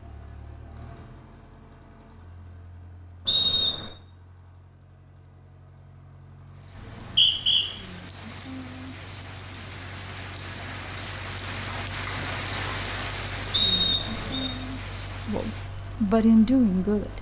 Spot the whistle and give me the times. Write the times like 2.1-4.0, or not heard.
3.2-3.9, 6.8-7.7, 13.5-14.5.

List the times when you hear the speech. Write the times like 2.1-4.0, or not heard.
15.2-17.1.